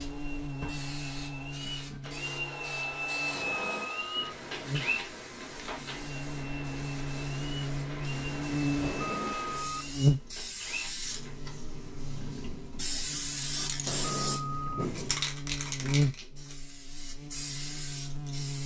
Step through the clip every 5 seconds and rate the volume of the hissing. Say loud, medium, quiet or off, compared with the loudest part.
medium, medium, loud, loud.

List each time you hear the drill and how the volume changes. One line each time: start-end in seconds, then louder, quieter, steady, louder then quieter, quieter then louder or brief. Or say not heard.
0.0-11.3 louder then quieter.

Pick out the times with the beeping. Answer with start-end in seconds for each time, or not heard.
3.3-4.2, 8.8-9.9, 13.8-14.7.